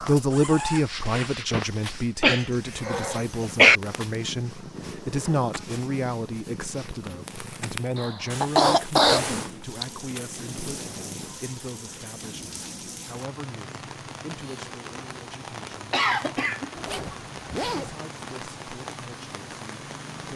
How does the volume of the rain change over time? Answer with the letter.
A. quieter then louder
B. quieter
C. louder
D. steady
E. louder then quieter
D.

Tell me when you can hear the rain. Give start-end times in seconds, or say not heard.
9.6-20.3.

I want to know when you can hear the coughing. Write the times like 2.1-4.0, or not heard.
2.2-3.8, 8.0-9.8, 15.9-17.9.